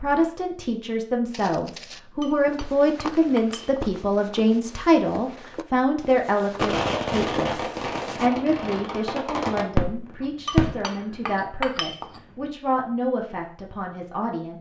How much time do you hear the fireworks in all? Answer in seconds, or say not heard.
4 s.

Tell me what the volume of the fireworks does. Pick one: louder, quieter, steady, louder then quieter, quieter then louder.
quieter then louder.